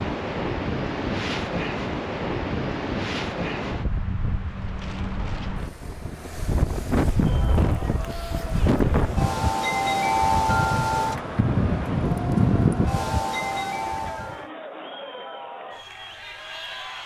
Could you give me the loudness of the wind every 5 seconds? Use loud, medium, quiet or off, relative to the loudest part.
medium, loud, loud, off.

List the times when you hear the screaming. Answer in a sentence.
You can't hear the screaming here.